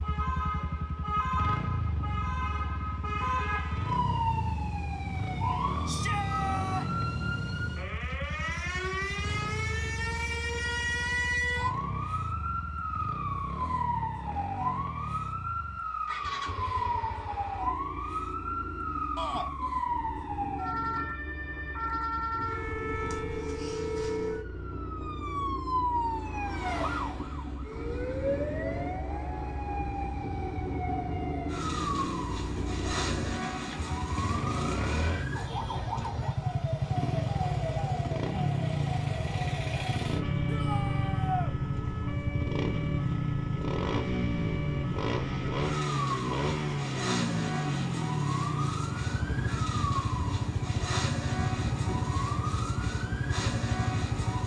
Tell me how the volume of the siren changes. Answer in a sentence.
The volume of the siren stays about the same.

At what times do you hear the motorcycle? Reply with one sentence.
The motorcycle can be heard from 0.0 to 54.4 s.